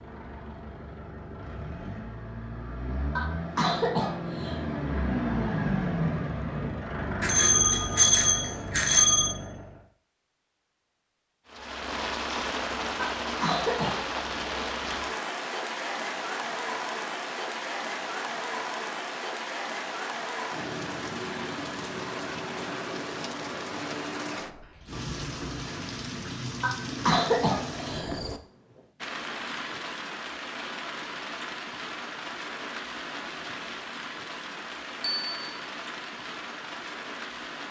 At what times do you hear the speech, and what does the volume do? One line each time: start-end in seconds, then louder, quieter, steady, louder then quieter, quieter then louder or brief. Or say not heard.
not heard.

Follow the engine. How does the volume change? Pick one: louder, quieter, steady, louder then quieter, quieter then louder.
louder then quieter.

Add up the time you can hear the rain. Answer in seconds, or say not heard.
26 s.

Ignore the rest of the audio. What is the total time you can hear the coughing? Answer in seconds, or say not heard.
4 s.